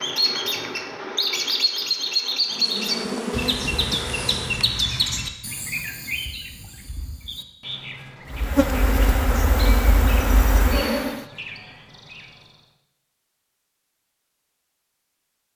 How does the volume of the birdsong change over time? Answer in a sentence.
The volume of the birdsong goes down.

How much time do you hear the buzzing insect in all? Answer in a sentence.
You can hear the buzzing insect for 5 seconds altogether.